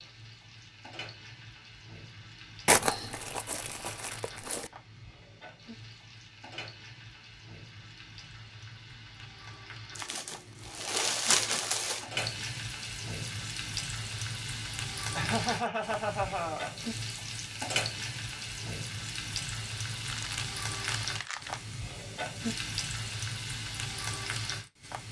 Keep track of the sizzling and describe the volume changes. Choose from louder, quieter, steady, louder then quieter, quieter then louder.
louder.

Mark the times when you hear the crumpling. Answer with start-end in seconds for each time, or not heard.
2.6-4.7, 9.9-12.1, 19.9-21.6.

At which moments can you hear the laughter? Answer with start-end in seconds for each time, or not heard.
15.2-16.8.